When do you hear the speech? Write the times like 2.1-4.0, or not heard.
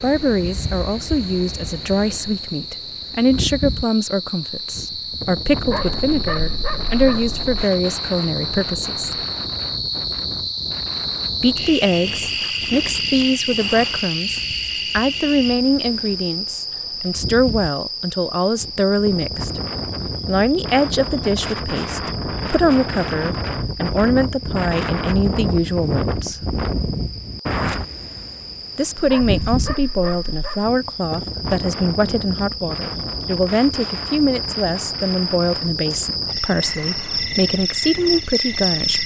0.0-9.2, 11.4-19.6, 20.2-26.4, 28.8-39.0.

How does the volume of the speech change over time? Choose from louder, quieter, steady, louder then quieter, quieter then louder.
steady.